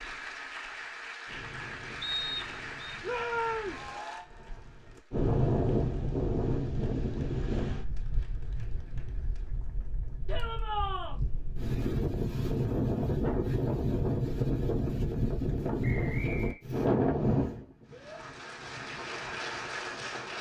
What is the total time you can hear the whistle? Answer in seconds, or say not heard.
2 s.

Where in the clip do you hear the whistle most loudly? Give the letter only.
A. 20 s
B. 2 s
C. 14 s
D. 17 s
B.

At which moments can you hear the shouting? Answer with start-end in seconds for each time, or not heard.
3.0-3.9, 10.2-11.2, 17.9-18.4.